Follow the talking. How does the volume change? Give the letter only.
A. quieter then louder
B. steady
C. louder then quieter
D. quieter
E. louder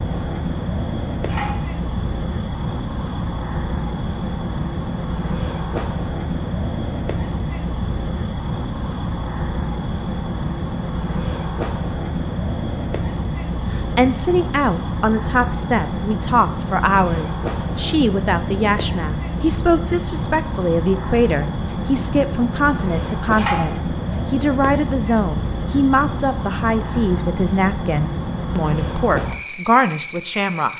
B.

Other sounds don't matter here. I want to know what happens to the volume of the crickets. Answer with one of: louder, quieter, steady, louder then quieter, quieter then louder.
steady.